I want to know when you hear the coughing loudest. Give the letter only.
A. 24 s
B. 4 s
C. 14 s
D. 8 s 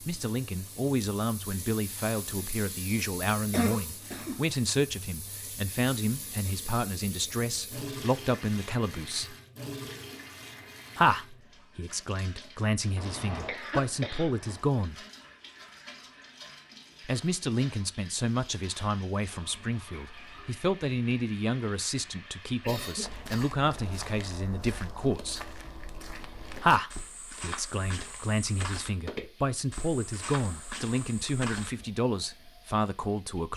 B.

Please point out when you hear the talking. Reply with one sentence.
You can hear the talking from 0.0 to 9.3 s, from 10.9 to 15.1 s, from 17.0 to 25.5 s and from 26.6 to 33.5 s.